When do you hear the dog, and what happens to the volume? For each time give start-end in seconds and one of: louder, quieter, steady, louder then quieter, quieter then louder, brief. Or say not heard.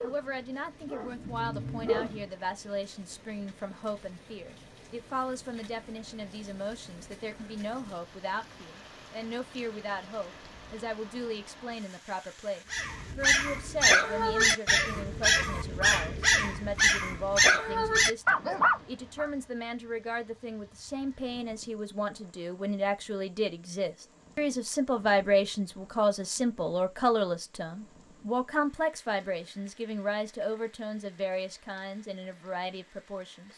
0.0-2.2 brief
12.7-19.3 steady.